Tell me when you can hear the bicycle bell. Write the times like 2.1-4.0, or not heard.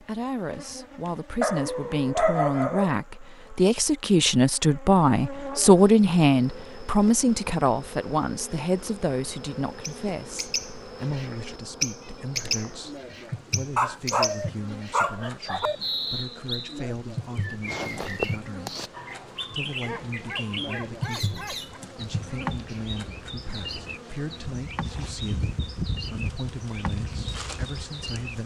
not heard.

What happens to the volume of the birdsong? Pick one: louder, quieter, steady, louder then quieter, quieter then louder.
quieter.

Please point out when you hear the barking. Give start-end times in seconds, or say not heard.
1.4-3.0, 13.8-15.8, 19.8-21.8.